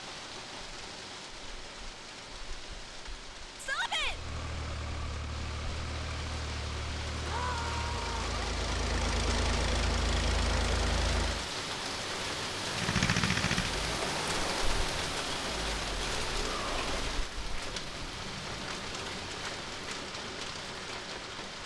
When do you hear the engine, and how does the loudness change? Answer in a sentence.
You can hear the engine from 4.0 to 11.4 s, getting louder; and from 12.7 to 17.2 s, getting quieter.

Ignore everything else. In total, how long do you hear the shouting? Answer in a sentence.
The shouting can be heard for 2 seconds in total.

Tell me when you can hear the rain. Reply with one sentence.
You can hear the rain from 0.0 to 21.6 s.